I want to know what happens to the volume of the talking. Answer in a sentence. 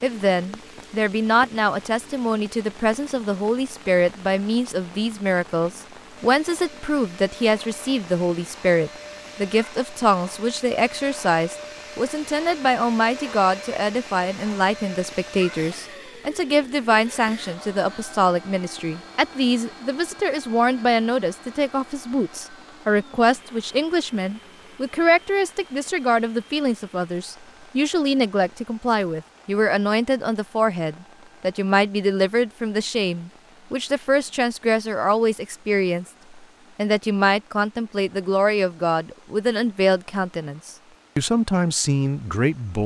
The volume of the talking stays about the same.